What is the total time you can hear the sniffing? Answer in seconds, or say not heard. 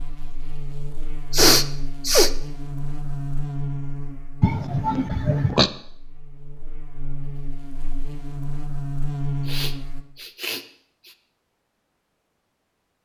4 s.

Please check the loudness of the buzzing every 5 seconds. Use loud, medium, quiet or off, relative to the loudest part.
loud, loud, off.